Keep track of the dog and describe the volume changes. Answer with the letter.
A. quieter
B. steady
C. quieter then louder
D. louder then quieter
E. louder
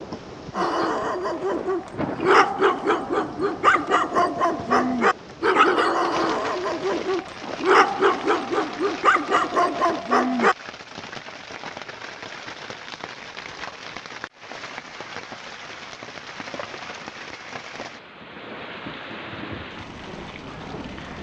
B.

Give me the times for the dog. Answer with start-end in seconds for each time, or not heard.
0.6-10.6.